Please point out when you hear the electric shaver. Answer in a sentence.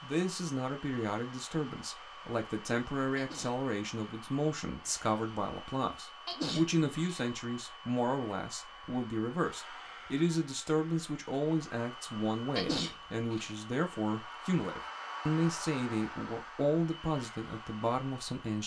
You can't hear the electric shaver here.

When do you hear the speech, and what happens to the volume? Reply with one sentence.
The speech can be heard from 0.0 to 18.6 s, at a steady volume.